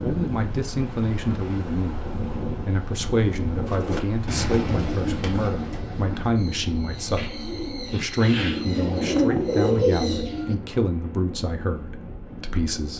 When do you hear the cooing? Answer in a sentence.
You can hear the cooing from 3.6 to 10.6 s.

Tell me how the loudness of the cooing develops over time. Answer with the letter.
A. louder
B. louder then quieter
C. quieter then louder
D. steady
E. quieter
C.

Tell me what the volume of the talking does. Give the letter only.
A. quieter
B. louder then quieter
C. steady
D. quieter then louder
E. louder
C.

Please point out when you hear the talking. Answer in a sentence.
You can hear the talking from 0.0 to 7.2 s and from 7.9 to 12.9 s.